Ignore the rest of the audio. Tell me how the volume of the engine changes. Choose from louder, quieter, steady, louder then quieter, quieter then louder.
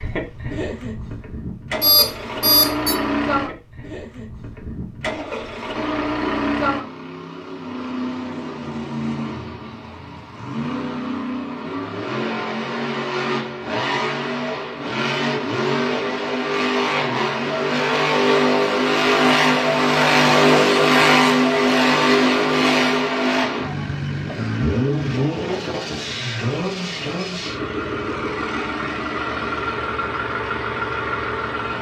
louder then quieter.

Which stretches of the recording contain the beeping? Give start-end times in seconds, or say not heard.
1.8-3.0.